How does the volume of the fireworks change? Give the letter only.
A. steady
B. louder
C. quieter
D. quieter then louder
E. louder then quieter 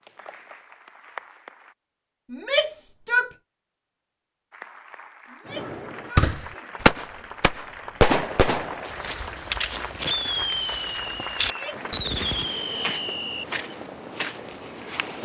C.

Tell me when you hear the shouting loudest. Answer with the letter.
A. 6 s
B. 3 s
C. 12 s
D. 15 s
B.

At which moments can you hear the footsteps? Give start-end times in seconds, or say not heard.
8.8-15.1.